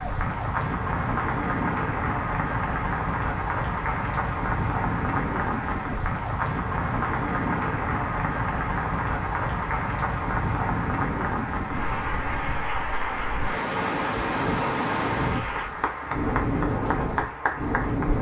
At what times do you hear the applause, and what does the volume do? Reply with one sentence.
The applause can be heard from 0.0 to 18.1 s, at a steady volume.